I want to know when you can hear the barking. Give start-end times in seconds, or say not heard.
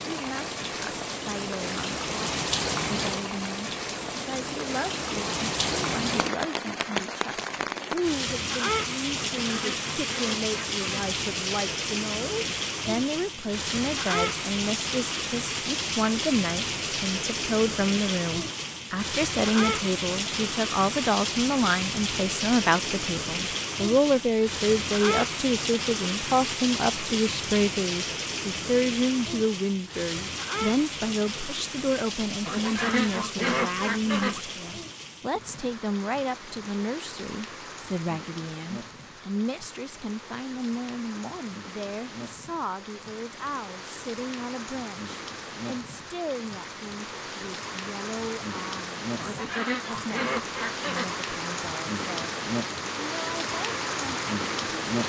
not heard.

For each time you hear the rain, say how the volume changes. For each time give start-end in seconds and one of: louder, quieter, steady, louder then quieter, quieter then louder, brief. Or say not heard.
0.0-55.0 quieter then louder.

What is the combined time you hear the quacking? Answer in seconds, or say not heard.
6 s.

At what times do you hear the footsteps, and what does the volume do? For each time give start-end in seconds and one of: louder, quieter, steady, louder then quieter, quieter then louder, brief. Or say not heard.
not heard.